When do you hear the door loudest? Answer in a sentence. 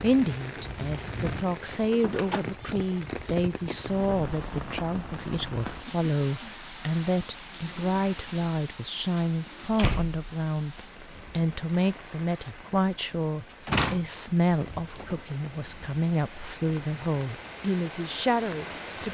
The loudest moment of the door is at 14 seconds.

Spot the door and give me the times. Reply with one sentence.
The door can be heard from 1.9 to 2.5 s, from 9.5 to 11.1 s and from 13.5 to 15.2 s.